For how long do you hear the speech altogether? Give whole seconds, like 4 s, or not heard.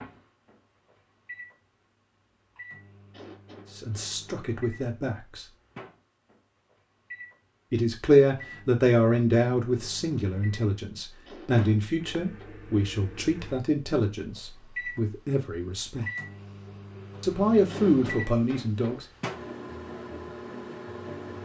12 s.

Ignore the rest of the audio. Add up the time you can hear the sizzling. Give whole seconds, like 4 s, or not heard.
not heard.